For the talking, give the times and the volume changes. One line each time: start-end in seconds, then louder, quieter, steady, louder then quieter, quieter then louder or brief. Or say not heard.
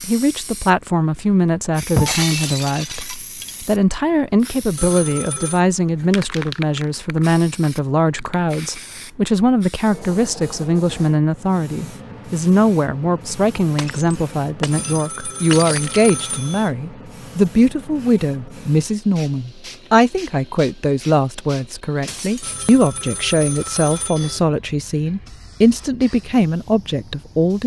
0.0-27.6 steady.